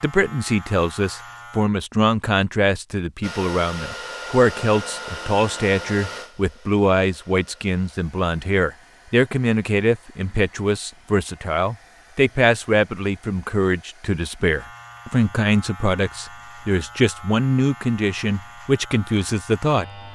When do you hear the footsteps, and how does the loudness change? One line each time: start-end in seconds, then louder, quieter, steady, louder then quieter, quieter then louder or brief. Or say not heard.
not heard.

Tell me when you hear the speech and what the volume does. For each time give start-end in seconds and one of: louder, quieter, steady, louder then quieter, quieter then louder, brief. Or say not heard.
0.0-19.9 steady.